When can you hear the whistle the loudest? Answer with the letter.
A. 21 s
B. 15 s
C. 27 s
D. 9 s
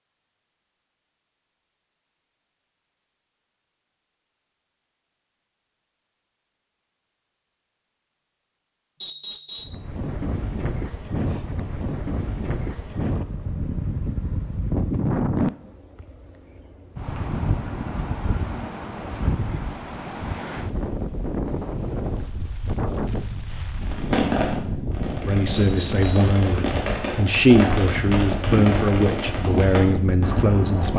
D.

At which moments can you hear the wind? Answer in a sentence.
The wind can be heard from 9.7 to 30.9 s.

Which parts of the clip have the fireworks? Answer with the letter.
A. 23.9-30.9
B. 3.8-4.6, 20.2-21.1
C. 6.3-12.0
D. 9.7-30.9
A.